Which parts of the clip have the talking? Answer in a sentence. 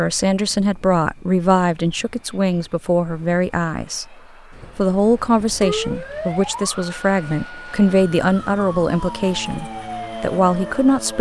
The talking can be heard from 0.0 to 4.2 s and from 4.8 to 11.1 s.